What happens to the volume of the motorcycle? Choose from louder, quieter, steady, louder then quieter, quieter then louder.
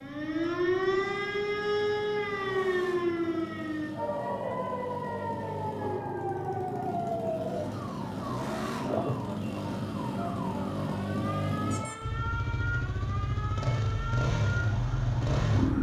louder.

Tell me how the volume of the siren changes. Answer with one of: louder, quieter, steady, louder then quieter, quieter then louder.
quieter.